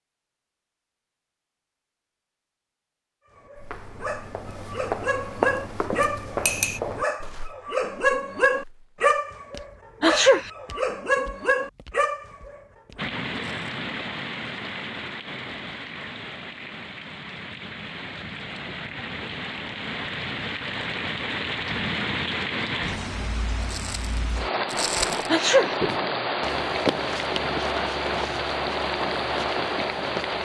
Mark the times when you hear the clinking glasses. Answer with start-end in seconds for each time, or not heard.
6.0-6.8.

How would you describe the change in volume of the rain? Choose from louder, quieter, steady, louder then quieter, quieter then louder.
louder.